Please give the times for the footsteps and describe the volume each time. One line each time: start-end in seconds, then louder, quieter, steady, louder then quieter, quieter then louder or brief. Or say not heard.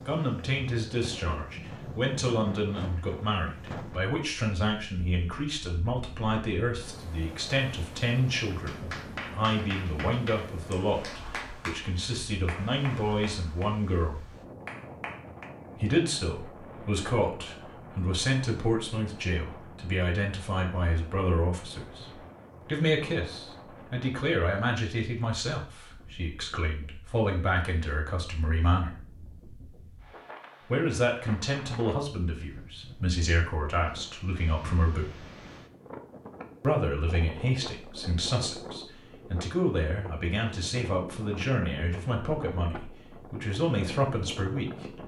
not heard.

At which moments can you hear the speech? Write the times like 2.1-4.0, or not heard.
0.0-14.2, 15.8-28.9, 30.6-35.1, 36.6-45.0.